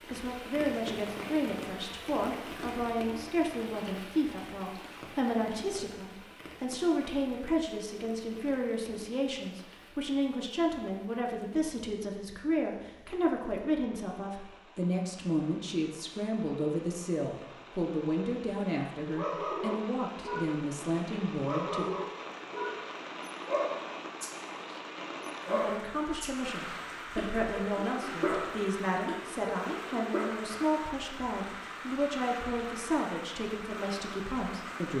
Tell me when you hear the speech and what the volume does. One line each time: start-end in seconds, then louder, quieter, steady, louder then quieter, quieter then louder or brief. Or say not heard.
0.0-21.9 steady
25.4-34.9 steady.